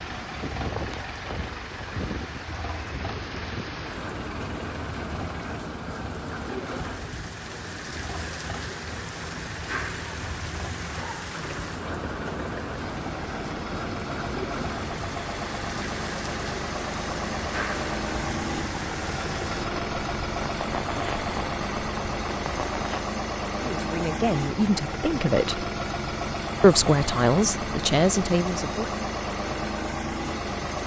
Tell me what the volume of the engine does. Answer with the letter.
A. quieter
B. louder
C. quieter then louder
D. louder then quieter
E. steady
B.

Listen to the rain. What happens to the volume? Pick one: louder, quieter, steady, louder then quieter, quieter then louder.
steady.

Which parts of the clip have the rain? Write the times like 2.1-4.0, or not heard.
0.0-23.1.